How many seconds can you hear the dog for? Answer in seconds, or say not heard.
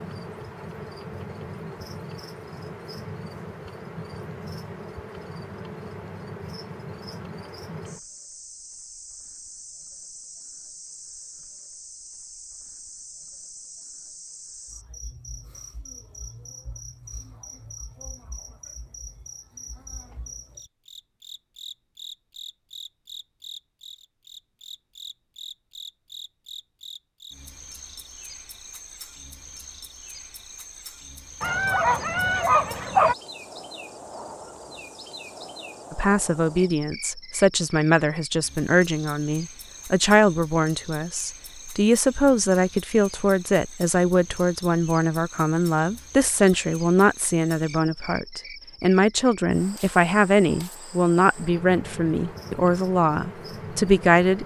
2 s.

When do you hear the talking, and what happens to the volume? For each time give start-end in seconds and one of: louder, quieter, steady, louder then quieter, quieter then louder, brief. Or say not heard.
35.9-54.4 steady.